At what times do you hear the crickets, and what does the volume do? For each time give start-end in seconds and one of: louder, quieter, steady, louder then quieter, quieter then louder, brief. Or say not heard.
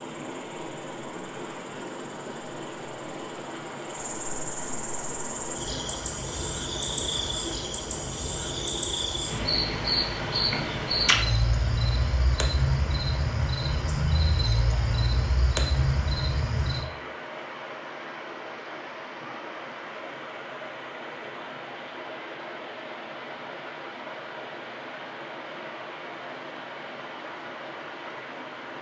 0.0-16.9 louder.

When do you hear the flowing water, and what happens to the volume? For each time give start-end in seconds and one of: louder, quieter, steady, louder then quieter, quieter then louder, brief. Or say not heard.
0.0-28.7 steady.